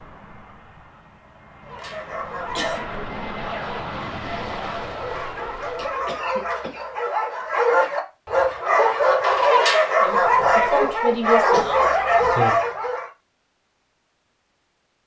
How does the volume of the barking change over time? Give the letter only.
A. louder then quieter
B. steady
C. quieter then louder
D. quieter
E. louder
E.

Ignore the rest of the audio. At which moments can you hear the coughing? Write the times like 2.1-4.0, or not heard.
1.6-2.9, 5.8-6.8, 11.5-12.3.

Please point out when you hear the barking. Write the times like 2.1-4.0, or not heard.
1.6-13.1.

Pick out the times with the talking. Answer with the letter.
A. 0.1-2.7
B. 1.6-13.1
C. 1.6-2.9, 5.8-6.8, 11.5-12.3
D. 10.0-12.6
D.